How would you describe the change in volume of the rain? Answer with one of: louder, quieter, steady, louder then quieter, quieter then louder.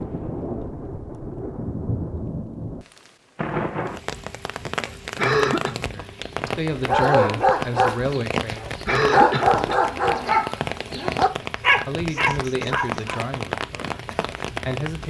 steady.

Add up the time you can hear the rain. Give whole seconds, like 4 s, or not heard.
15 s.